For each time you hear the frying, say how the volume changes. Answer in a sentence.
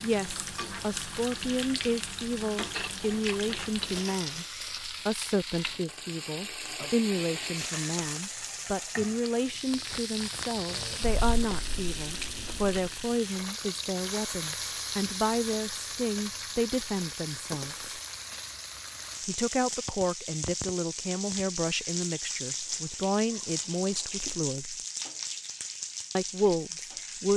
You can hear the frying from 0.0 to 27.3 s, at a steady volume.